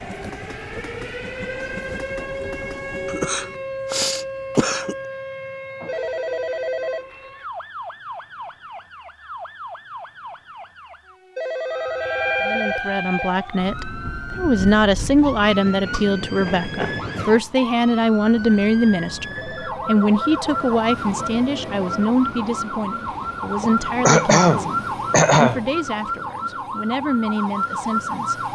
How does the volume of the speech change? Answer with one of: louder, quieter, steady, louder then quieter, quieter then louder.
quieter.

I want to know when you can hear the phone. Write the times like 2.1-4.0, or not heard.
5.8-7.0, 11.3-13.3, 19.4-22.1.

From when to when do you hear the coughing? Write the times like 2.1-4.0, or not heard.
3.0-5.0, 15.0-16.1, 23.6-25.6.